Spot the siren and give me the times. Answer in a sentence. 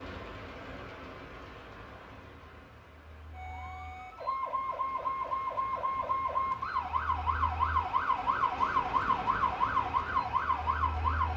You can hear the siren from 3.3 to 11.3 s.